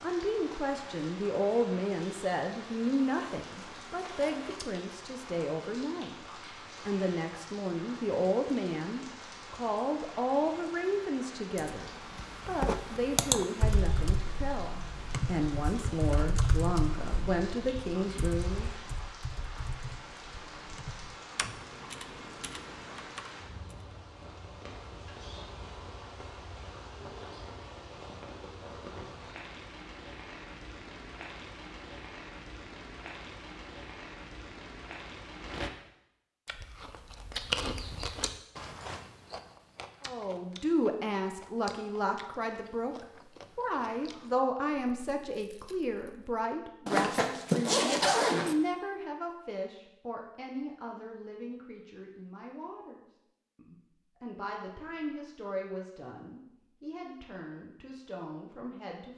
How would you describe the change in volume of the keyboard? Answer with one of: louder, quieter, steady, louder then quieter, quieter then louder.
quieter.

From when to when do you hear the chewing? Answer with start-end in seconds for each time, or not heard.
36.5-46.4.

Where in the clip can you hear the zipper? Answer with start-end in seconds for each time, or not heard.
3.0-4.7, 46.9-48.5.